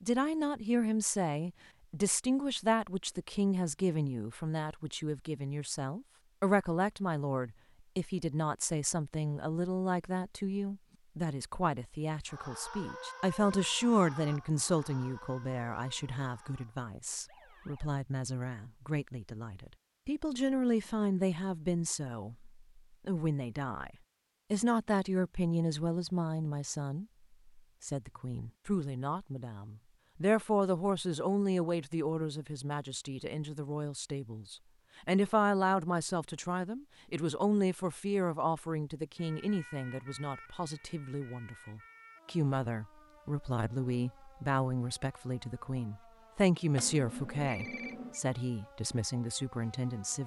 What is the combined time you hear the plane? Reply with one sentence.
The plane can't be heard in this clip.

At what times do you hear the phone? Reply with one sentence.
You can hear the phone from 46.8 to 48.2 s.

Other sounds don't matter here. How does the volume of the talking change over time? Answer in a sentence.
The volume of the talking stays about the same.